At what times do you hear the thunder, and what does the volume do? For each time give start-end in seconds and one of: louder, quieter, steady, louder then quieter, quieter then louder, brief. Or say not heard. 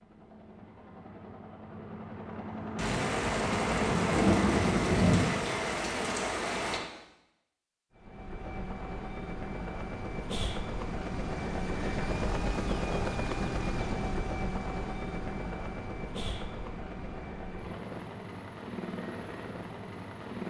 2.8-6.8 louder then quieter.